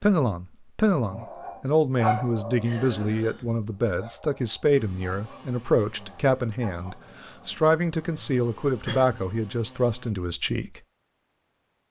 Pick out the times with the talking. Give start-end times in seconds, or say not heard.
0.0-10.8.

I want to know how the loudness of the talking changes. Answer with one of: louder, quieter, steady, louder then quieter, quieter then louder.
steady.